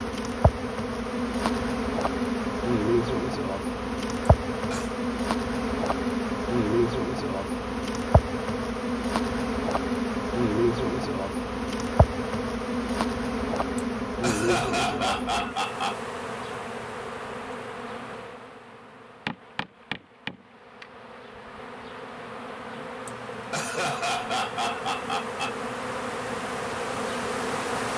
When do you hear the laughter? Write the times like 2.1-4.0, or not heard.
4.5-5.0, 13.8-15.9, 23.1-25.6.